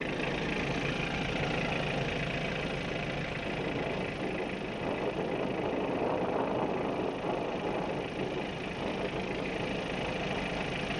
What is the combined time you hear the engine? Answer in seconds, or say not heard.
11 s.